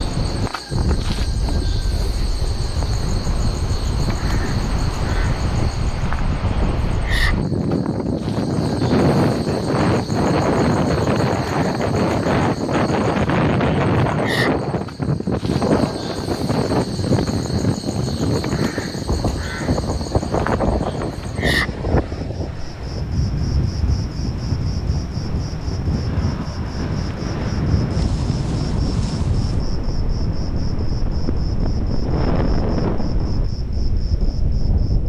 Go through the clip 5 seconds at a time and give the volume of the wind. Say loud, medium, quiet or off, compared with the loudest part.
medium, loud, loud, loud, medium, medium, medium.